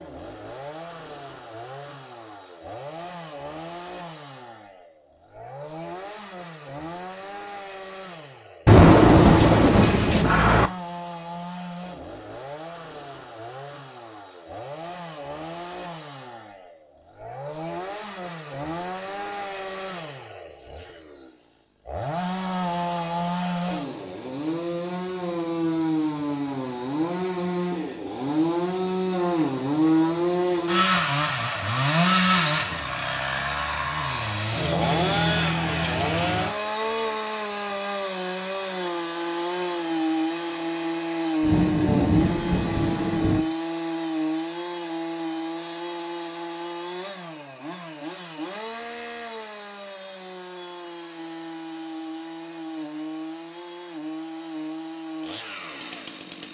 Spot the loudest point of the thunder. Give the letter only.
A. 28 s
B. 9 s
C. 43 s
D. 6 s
B.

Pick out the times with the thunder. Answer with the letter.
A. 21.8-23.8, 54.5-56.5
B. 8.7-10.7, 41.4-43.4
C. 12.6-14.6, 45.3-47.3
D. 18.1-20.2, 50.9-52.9
B.